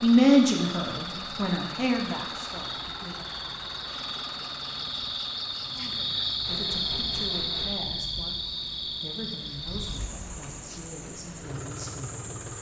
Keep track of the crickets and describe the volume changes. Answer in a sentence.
The volume of the crickets goes up, then down.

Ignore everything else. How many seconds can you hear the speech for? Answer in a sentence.
The speech can be heard for 9 seconds in total.